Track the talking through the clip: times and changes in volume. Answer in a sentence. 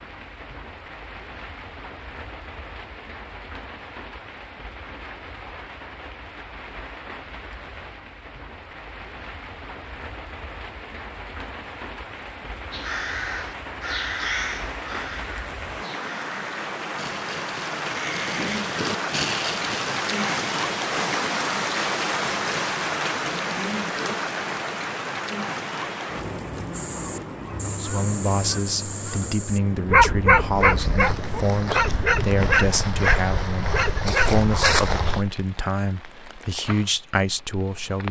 You can hear the talking from 27.6 to 38.0 s, at a steady volume.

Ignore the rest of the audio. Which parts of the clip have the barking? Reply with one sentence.
The barking can be heard from 29.9 to 35.2 s.